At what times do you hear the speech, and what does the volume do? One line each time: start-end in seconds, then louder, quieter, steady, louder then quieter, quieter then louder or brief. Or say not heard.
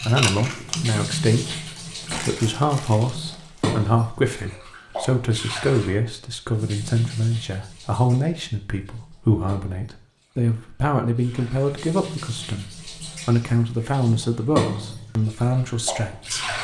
0.0-16.6 steady.